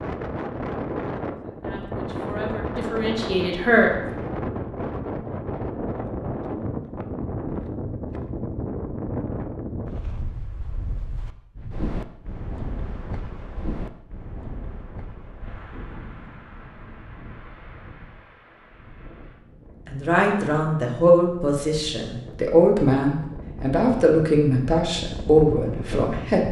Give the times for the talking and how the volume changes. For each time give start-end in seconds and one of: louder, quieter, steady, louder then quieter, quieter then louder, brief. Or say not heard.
1.6-3.9 brief
19.9-26.4 quieter then louder.